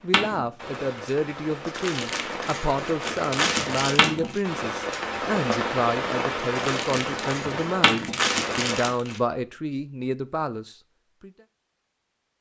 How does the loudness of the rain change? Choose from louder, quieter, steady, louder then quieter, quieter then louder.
louder.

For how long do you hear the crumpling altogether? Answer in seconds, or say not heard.
5 s.